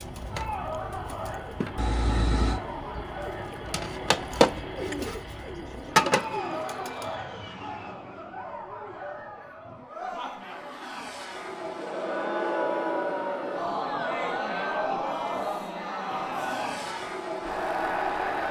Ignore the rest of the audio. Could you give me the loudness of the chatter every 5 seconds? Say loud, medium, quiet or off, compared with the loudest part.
medium, medium, loud, loud.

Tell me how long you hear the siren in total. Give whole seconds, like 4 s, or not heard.
not heard.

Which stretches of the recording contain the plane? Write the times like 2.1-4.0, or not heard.
0.0-18.4.